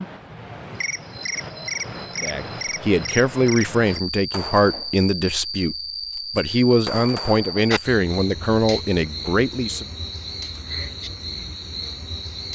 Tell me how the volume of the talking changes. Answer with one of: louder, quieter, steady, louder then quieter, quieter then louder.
steady.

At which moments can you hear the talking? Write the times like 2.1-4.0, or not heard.
2.1-9.8.